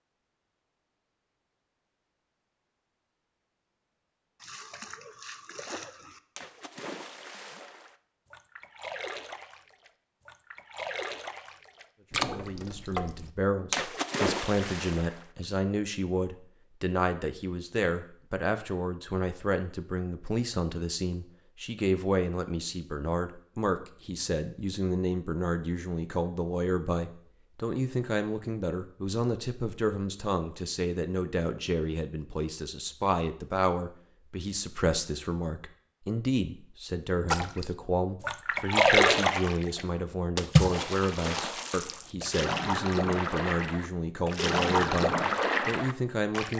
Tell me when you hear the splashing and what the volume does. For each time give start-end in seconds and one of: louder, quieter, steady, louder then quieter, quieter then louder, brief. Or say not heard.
4.4-15.6 louder
37.3-46.5 quieter then louder.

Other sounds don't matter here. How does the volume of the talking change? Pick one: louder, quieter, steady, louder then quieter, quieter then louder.
steady.